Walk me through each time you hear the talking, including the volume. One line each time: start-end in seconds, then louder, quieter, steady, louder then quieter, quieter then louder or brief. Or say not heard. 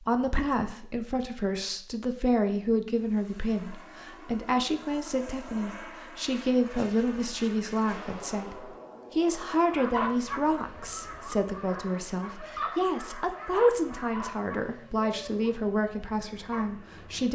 0.0-17.3 steady.